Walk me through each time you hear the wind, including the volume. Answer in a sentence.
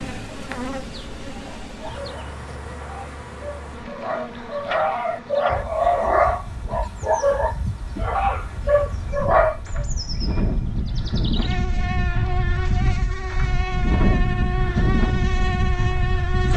The wind can be heard from 5.5 to 16.5 s, getting louder.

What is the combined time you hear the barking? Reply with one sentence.
You can hear the barking for 8 seconds altogether.